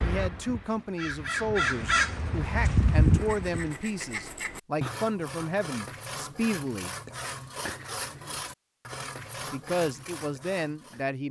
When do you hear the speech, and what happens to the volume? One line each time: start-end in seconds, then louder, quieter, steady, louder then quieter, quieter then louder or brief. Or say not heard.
0.0-7.0 steady
9.5-11.2 brief.